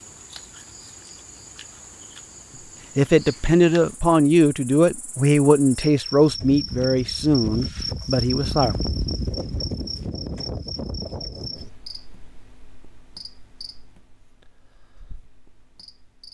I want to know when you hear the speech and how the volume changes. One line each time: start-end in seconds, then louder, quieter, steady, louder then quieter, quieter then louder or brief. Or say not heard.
3.0-8.8 quieter.